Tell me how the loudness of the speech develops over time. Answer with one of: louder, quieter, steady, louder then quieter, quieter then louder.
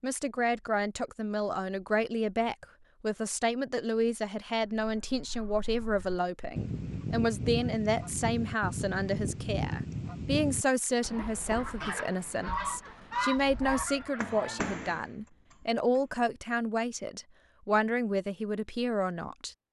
steady.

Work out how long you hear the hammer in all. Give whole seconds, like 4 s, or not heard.
2 s.